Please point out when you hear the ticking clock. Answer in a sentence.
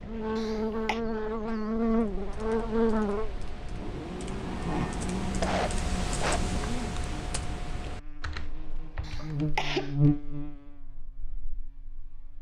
You can't hear the ticking clock here.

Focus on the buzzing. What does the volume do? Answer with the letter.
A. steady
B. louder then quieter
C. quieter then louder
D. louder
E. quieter
C.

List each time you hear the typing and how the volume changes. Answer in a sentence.
The typing can be heard from 1.9 to 9.6 s, getting louder then quieter.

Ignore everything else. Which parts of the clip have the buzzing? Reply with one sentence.
You can hear the buzzing from 0.0 to 12.3 s.